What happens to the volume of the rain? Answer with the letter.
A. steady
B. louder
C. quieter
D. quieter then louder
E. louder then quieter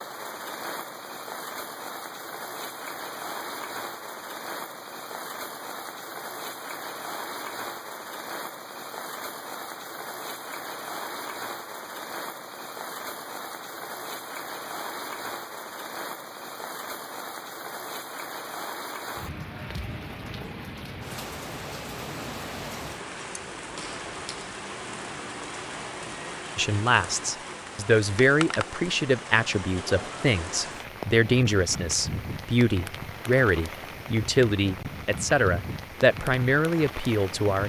A.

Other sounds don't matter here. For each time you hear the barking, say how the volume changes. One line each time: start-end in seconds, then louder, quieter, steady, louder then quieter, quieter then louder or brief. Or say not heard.
not heard.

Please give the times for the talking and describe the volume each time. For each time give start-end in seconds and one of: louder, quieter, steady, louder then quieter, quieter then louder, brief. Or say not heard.
26.6-37.6 steady.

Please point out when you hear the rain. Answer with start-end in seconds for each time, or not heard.
0.0-37.6.